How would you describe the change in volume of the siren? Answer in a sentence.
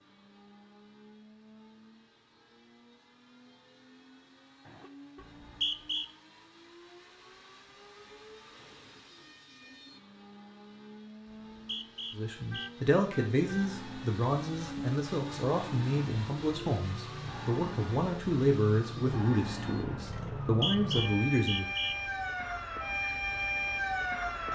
The loudness of the siren goes up.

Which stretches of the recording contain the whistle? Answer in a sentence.
The whistle can be heard from 5.2 to 6.0 s, from 11.2 to 12.7 s and from 20.4 to 21.9 s.